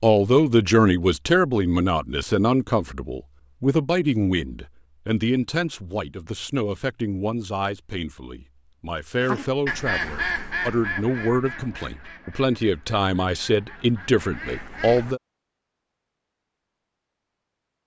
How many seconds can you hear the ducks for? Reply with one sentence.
You can hear the ducks for 6 seconds altogether.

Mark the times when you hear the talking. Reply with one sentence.
You can hear the talking from 0.0 to 15.2 s.